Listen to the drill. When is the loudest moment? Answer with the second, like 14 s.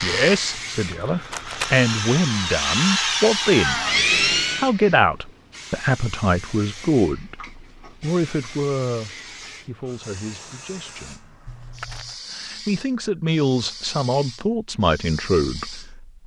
4 s.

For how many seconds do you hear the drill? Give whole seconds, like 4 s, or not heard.
5 s.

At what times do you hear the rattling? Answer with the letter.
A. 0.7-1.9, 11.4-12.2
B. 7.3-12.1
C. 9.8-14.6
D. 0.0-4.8
A.